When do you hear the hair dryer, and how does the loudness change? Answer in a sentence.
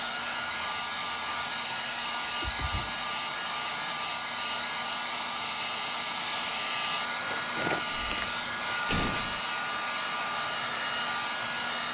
The hair dryer can be heard from 0.0 to 11.8 s, at a steady volume.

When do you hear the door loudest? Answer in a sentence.
The volume of the door peaks at 9 seconds.